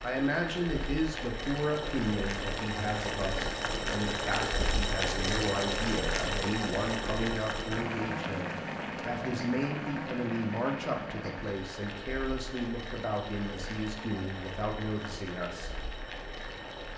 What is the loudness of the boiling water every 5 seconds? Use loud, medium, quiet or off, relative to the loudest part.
loud, loud, medium, medium.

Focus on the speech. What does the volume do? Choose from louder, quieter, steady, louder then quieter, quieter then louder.
steady.